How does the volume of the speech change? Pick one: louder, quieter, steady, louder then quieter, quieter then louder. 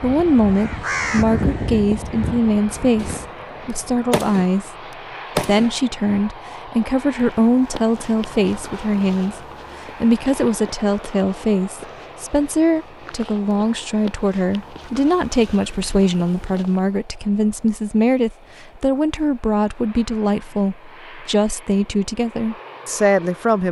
steady.